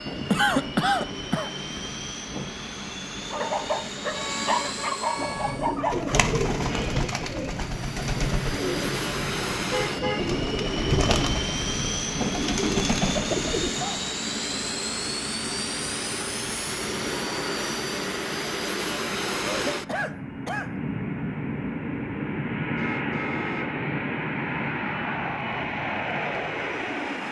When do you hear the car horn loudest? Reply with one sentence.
The volume of the car horn peaks at 10 seconds.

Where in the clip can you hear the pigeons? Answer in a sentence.
You can hear the pigeons from 5.2 to 13.8 s.